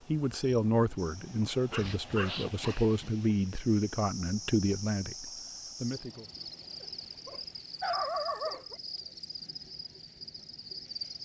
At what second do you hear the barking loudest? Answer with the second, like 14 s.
8 s.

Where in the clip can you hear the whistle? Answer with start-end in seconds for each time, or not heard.
not heard.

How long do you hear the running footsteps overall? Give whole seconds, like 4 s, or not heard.
not heard.